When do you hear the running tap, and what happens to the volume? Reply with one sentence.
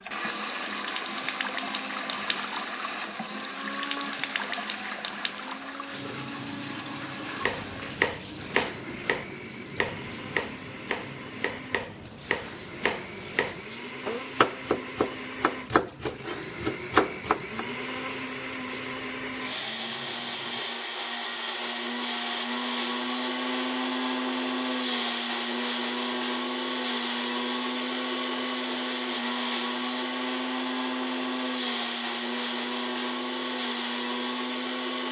The running tap can be heard from 0.0 to 20.8 s, getting quieter.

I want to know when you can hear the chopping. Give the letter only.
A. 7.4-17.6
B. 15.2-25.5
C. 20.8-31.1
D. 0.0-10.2
A.